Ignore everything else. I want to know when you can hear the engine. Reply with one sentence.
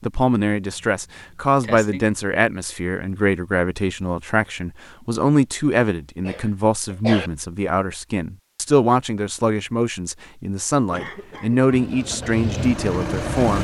You can hear the engine from 11.1 to 13.5 s.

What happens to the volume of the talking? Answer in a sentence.
The volume of the talking stays about the same.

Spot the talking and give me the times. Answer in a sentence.
The talking can be heard from 0.0 to 13.5 s.